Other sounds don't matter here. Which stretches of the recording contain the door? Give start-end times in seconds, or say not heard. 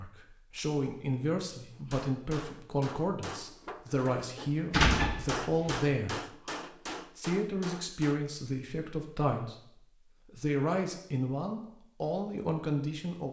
4.7-5.8.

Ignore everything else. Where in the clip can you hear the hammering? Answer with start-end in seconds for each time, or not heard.
1.7-8.2.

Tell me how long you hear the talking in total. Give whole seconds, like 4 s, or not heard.
12 s.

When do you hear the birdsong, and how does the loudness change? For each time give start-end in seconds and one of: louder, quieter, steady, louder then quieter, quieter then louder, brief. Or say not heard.
not heard.